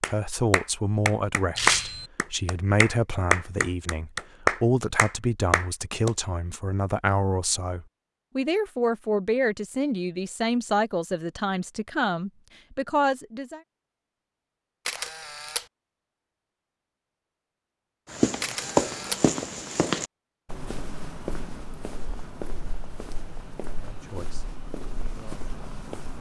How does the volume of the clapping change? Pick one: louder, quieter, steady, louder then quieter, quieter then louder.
louder then quieter.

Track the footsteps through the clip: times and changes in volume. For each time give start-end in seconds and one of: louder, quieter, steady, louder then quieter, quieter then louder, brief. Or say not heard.
18.1-26.1 quieter.